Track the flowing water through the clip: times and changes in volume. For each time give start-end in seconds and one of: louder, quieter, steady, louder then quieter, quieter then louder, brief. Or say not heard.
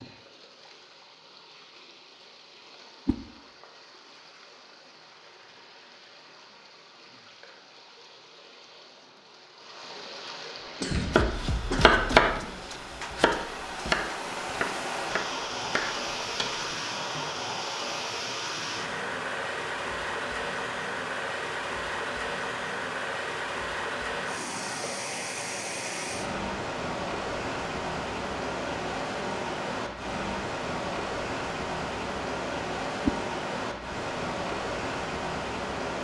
0.0-35.9 louder.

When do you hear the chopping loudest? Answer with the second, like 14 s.
12 s.